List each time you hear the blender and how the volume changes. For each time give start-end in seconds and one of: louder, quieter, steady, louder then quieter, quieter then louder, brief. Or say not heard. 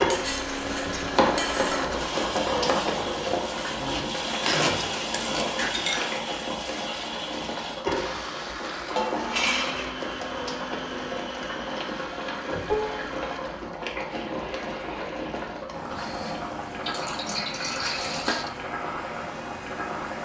0.0-20.2 quieter.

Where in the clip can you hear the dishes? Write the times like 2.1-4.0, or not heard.
0.1-1.9, 4.2-6.2, 8.9-9.9, 12.7-13.1, 16.9-18.5.